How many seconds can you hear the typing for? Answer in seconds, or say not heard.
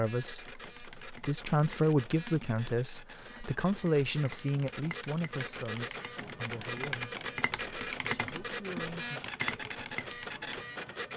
10 s.